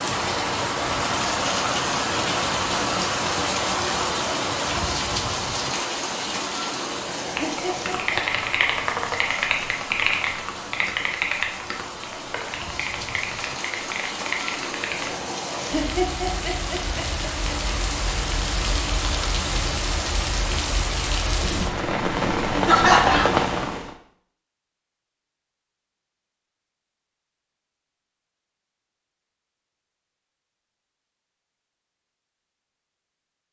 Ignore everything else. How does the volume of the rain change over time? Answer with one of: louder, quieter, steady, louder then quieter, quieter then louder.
quieter then louder.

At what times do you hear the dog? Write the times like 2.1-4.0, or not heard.
not heard.